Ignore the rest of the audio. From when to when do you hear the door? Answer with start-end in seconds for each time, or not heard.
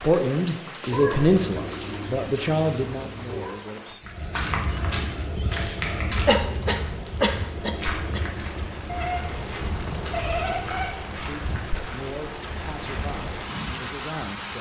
not heard.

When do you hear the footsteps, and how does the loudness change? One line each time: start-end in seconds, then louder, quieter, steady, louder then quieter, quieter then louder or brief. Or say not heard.
4.0-13.3 quieter.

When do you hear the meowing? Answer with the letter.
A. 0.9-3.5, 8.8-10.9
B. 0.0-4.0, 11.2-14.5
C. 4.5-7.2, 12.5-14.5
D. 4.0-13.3
A.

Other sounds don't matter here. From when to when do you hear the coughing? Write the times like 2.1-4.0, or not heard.
6.2-8.2.